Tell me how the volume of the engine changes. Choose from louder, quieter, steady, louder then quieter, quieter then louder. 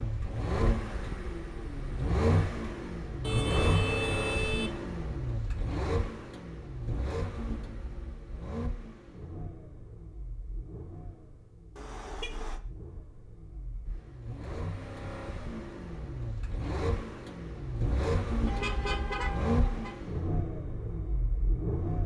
quieter then louder.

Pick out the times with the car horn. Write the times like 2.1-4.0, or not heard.
3.2-4.8, 11.8-12.6, 18.4-19.9.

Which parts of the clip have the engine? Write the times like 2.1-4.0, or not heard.
0.0-22.0.